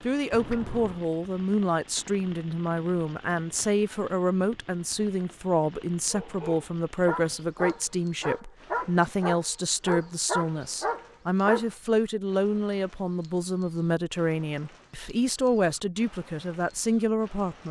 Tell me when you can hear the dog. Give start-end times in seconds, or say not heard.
6.1-11.7.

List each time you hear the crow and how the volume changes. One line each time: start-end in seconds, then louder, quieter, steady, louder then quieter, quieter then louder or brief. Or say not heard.
not heard.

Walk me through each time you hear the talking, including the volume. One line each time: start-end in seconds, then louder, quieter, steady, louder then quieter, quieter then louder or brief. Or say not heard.
0.0-17.6 steady.